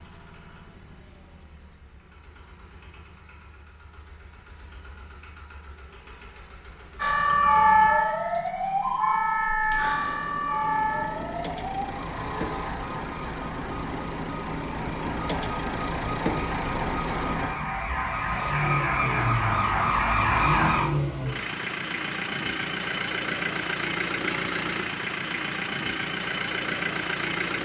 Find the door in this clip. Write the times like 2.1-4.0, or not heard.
not heard.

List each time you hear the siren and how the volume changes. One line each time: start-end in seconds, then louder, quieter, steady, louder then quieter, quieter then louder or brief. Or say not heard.
7.0-20.9 quieter then louder.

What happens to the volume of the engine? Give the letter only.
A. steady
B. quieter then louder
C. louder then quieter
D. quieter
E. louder
E.